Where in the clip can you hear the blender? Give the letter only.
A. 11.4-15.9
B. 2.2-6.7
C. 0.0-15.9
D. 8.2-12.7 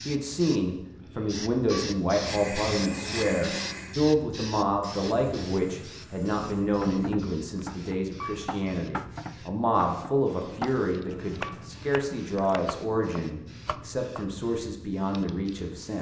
B.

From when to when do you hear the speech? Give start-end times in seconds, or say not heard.
0.0-15.9.